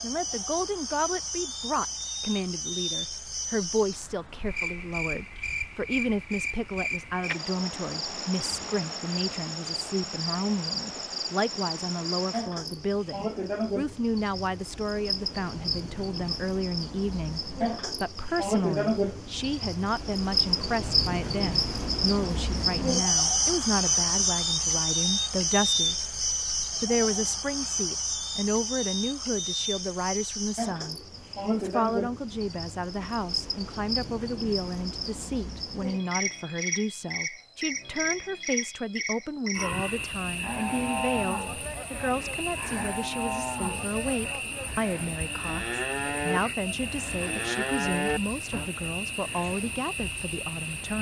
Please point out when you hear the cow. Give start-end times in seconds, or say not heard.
39.5-48.7.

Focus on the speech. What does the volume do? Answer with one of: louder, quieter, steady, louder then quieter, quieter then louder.
steady.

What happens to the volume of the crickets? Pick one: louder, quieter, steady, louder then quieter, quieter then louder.
louder then quieter.